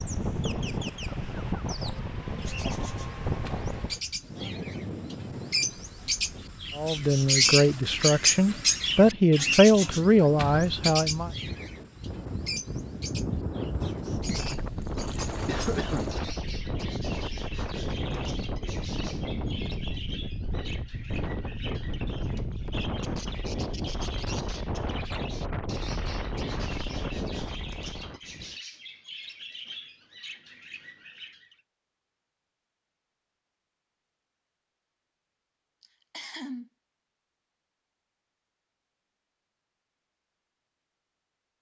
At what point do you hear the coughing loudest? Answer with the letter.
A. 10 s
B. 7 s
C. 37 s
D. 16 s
D.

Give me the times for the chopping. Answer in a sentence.
The chopping can't be heard in this clip.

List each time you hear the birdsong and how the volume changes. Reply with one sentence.
The birdsong can be heard from 0.0 to 31.6 s, getting louder then quieter.